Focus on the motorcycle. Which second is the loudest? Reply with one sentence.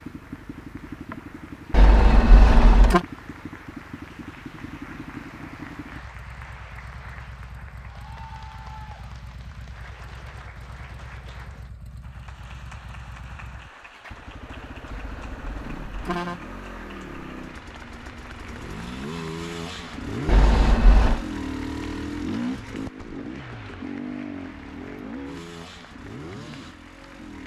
The volume of the motorcycle peaks at 22 seconds.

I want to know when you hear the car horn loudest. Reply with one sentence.
The loudest moment of the car horn is at 3 seconds.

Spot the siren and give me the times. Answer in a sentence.
The siren can't be heard in this clip.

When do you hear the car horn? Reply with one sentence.
You can hear the car horn from 1.7 to 3.0 s, from 14.8 to 16.4 s and from 20.2 to 21.2 s.